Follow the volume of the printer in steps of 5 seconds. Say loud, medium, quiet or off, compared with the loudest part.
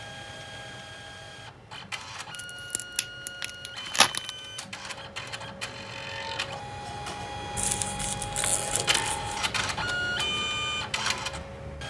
medium, loud, loud.